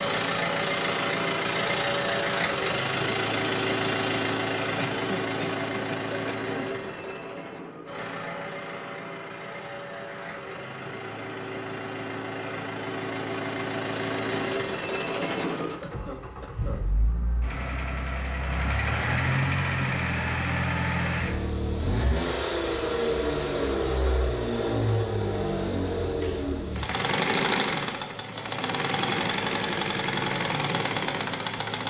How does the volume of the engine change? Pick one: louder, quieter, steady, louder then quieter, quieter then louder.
quieter then louder.